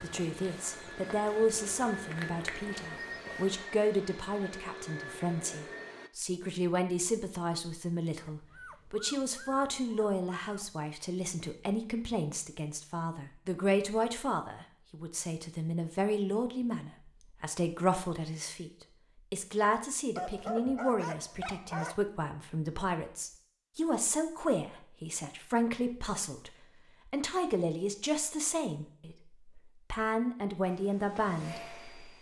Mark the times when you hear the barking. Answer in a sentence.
The barking can be heard from 8.2 to 10.9 s and from 20.1 to 22.0 s.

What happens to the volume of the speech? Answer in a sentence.
The volume of the speech stays about the same.